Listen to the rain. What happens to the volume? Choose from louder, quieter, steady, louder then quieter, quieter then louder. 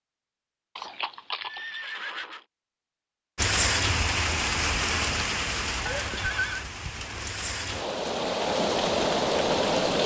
quieter then louder.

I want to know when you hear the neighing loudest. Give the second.
6 s.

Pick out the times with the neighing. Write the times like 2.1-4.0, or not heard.
0.8-2.4, 5.8-6.7.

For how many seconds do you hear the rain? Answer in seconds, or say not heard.
7 s.